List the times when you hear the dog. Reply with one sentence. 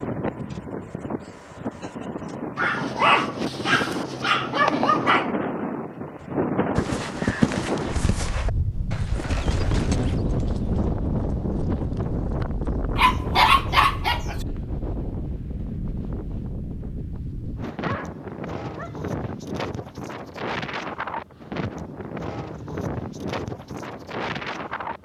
You can hear the dog from 2.5 to 5.3 s, from 12.9 to 14.4 s and from 17.8 to 19.1 s.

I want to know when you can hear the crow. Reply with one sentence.
The crow can't be heard in this clip.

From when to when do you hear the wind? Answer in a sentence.
The wind can be heard from 0.0 to 25.0 s.